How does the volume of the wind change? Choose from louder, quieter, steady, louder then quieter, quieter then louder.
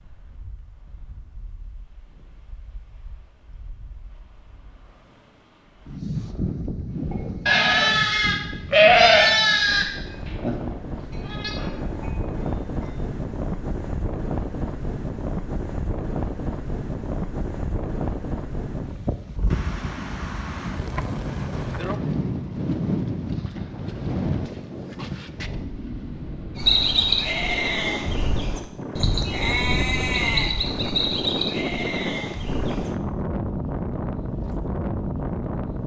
louder.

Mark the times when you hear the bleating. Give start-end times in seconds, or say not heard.
7.1-12.9, 26.6-32.9.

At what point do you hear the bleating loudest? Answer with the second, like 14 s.
9 s.